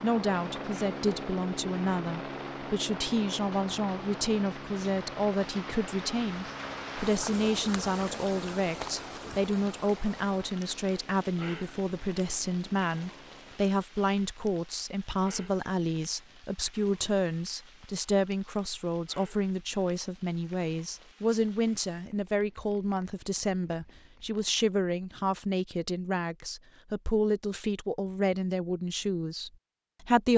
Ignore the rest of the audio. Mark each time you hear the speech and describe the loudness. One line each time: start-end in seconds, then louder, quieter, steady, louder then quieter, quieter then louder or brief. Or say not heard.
0.0-30.3 steady.